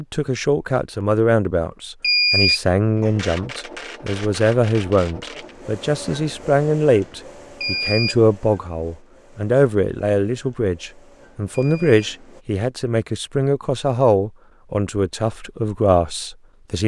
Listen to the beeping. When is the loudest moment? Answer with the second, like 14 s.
2 s.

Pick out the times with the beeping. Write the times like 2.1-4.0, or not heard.
2.0-3.1, 7.6-8.2, 11.5-11.9.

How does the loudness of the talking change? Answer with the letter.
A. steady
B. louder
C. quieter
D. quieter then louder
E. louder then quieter
A.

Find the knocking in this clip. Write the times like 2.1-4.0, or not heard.
not heard.